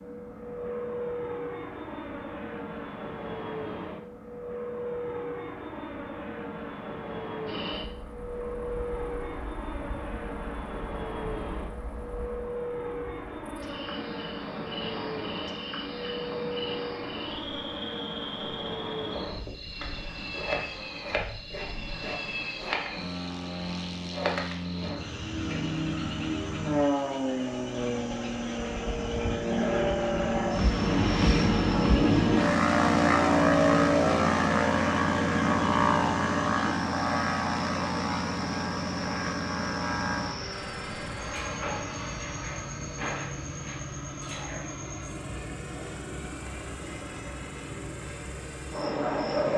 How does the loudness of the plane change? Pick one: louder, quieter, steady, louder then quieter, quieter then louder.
louder then quieter.